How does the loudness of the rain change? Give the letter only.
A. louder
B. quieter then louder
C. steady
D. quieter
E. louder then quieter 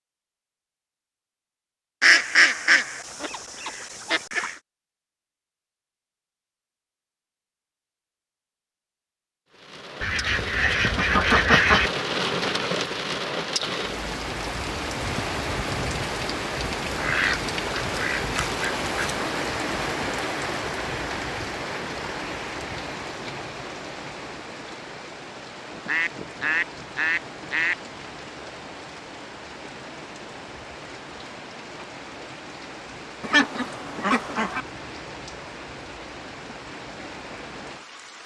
D.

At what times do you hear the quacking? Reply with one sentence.
You can hear the quacking from 2.0 to 4.5 s, from 10.0 to 11.9 s, from 16.9 to 19.2 s, from 25.8 to 27.8 s and from 33.2 to 34.6 s.